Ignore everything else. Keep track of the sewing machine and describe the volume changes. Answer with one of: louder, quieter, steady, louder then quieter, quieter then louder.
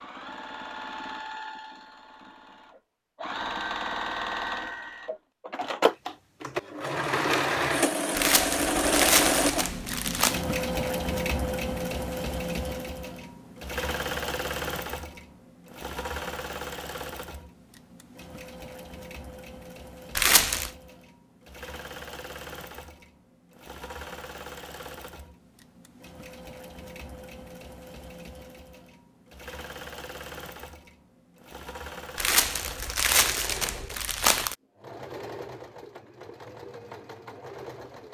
quieter.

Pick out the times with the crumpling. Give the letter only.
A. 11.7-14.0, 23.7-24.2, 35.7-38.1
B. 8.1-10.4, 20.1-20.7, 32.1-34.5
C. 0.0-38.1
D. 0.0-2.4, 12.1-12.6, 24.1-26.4
B.